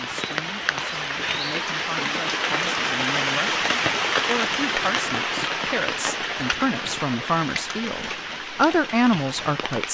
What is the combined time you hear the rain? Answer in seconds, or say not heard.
10 s.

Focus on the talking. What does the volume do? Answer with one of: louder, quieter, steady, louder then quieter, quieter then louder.
louder.